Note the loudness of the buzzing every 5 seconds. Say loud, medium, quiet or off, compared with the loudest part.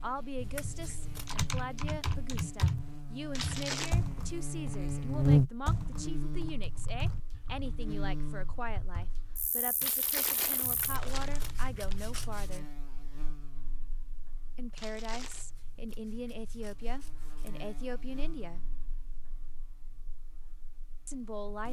medium, loud, quiet, quiet, quiet.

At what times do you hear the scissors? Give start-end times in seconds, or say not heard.
0.3-1.4, 10.6-12.6, 15.1-17.6.